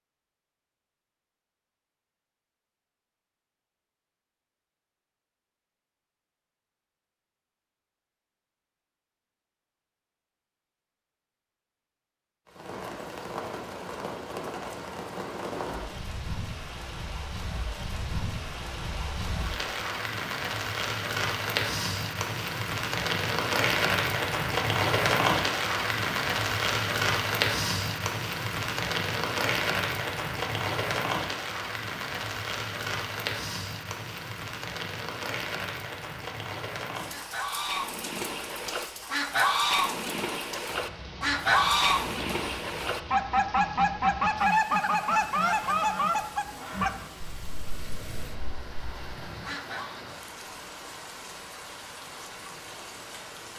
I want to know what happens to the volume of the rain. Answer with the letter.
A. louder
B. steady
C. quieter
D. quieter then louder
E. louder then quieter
E.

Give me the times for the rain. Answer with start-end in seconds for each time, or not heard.
12.4-53.5.